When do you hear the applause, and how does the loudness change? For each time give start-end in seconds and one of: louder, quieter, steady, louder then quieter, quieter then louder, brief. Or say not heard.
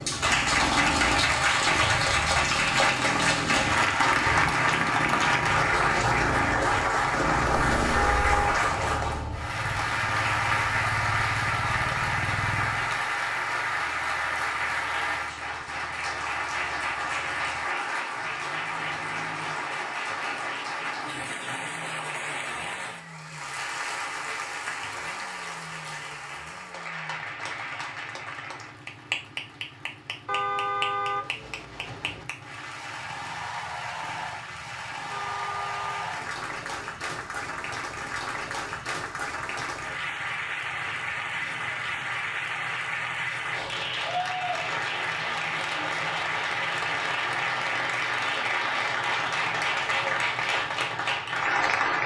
0.0-52.0 quieter then louder.